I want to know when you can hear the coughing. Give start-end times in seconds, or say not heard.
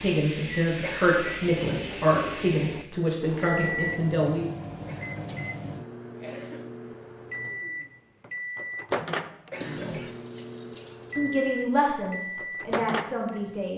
0.8-1.4, 4.8-6.8, 9.5-10.2.